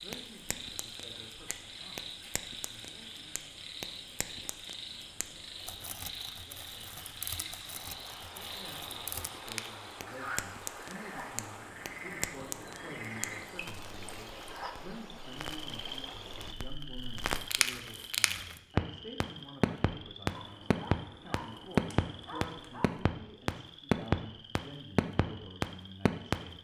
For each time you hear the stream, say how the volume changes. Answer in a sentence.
You can hear the stream from 0.0 to 16.6 s, getting louder.